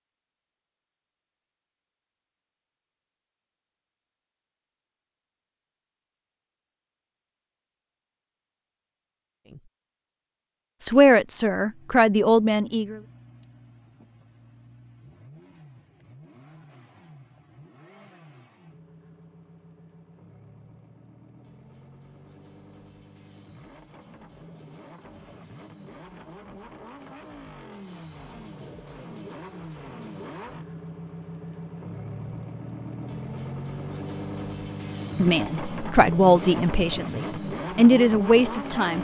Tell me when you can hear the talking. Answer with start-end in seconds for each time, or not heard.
10.8-13.0, 35.1-38.9.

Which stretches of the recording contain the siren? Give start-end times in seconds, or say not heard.
not heard.